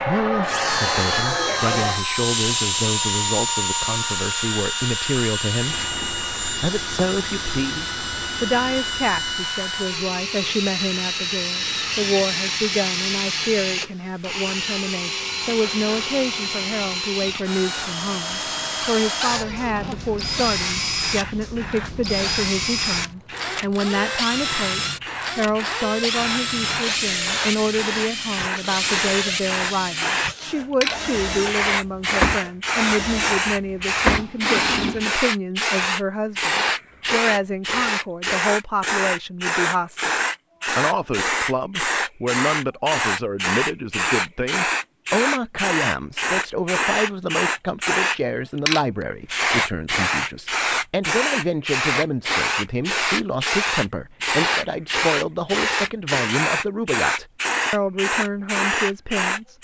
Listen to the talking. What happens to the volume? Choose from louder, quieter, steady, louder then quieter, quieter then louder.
steady.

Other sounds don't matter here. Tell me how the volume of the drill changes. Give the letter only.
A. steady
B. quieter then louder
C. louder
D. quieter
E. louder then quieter
A.